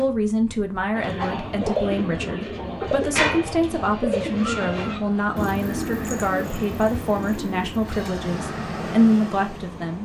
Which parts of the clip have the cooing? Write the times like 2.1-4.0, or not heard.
0.9-8.2.